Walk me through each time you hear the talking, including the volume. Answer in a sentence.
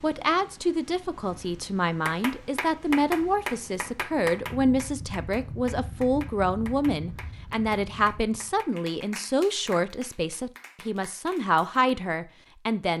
You can hear the talking from 0.0 to 12.9 s, at a steady volume.